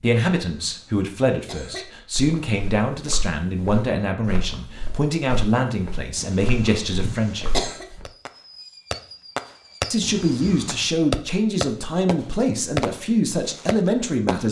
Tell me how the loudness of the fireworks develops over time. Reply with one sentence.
The loudness of the fireworks goes up, then down.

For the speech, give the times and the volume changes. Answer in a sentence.
You can hear the speech from 0.0 to 7.5 s, at a steady volume; and from 9.9 to 14.4 s, at a steady volume.